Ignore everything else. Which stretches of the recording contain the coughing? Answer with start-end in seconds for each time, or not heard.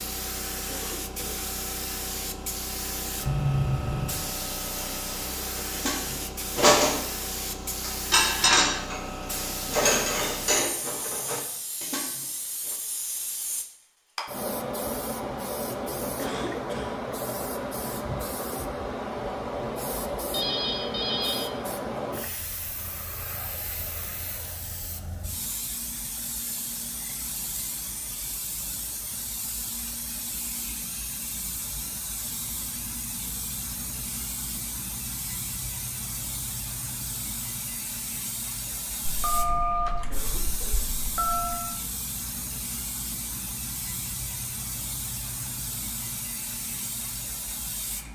0.7-1.4, 16.1-17.0, 40.1-40.9.